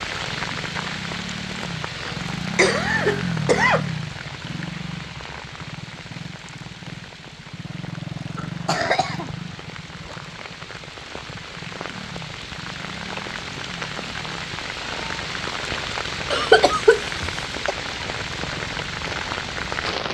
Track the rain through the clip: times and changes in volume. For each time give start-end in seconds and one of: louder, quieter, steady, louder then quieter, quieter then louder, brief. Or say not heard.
0.0-20.0 quieter then louder.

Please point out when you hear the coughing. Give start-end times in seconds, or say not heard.
1.9-3.9, 8.3-9.3, 16.3-17.8.